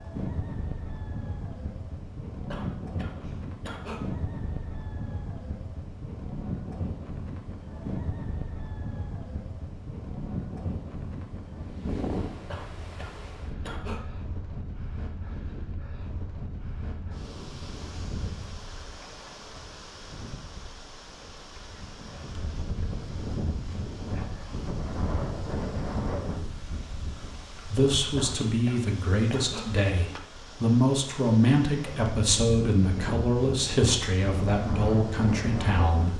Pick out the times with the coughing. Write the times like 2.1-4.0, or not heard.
2.5-4.0, 12.5-14.0, 28.1-29.7.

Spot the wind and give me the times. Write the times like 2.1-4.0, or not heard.
0.0-36.1.